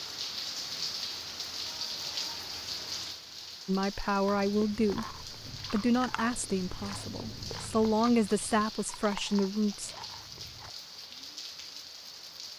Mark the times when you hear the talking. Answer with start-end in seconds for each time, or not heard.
3.6-9.9.